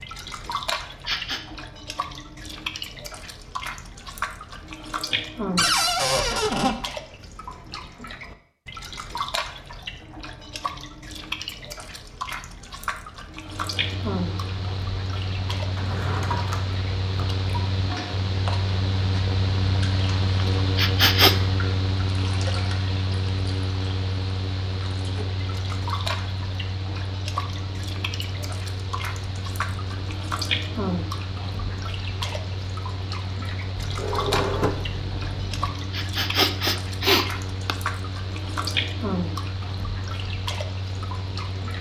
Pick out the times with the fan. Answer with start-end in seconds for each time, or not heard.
13.3-41.7.